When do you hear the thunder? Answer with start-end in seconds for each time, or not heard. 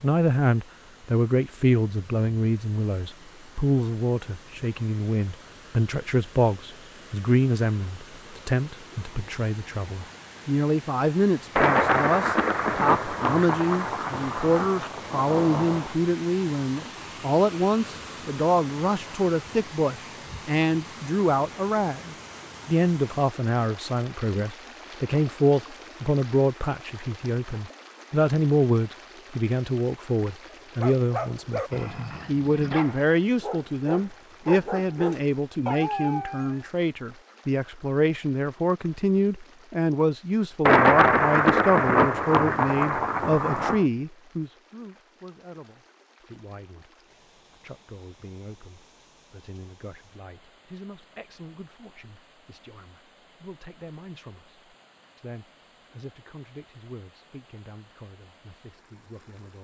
11.6-15.9, 40.6-43.9.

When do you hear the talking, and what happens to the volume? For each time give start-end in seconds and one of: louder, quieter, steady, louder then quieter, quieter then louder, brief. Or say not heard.
0.0-59.5 quieter.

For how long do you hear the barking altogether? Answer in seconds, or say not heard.
6 s.